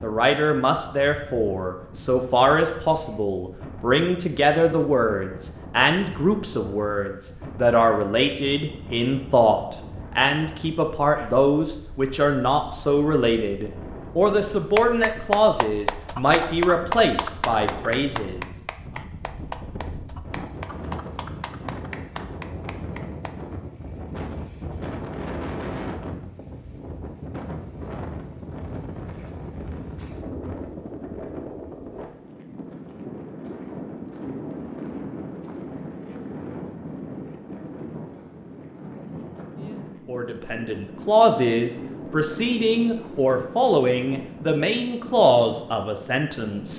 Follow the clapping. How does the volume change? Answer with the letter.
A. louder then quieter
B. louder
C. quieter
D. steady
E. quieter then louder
C.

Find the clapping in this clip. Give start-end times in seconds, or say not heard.
14.8-23.4.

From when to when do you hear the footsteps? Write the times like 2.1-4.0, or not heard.
not heard.